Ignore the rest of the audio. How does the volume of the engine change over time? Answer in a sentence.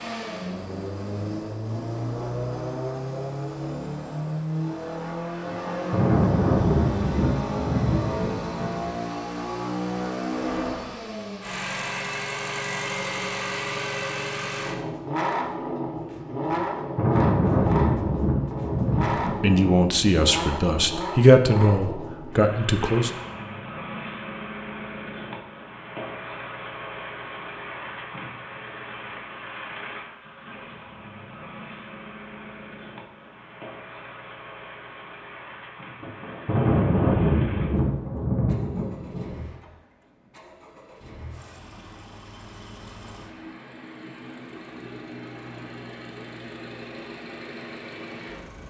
The volume of the engine goes down.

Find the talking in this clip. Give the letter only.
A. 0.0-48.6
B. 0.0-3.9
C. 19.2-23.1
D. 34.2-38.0
C.